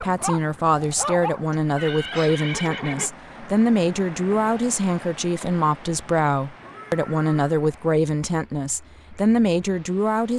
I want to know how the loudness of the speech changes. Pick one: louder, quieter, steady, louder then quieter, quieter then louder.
steady.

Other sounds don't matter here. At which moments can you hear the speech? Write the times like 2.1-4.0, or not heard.
0.0-10.3.